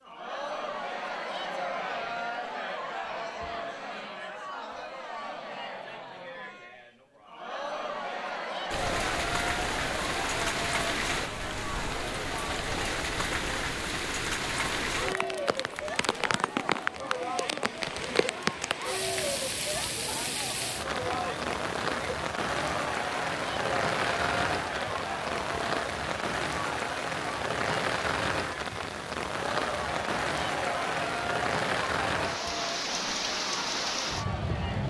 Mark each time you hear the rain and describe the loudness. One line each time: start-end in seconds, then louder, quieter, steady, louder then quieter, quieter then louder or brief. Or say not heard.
8.7-34.8 steady.